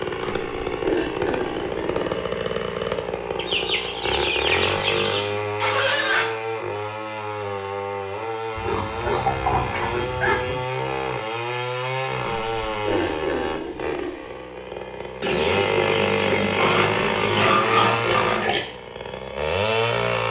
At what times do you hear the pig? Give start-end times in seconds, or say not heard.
0.2-2.1, 4.4-6.2, 8.6-10.6, 12.2-14.2, 16.6-18.6.